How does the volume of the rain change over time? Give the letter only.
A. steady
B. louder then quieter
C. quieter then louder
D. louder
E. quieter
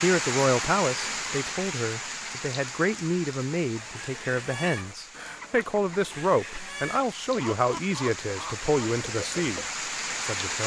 C.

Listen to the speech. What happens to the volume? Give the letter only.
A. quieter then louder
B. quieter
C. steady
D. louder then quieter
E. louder
C.